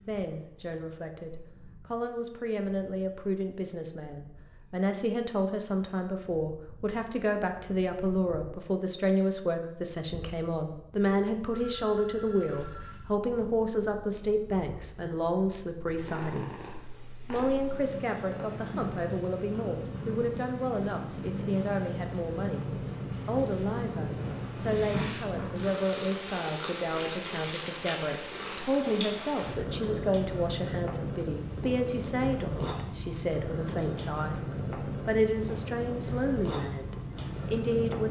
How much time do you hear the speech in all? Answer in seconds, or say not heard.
37 s.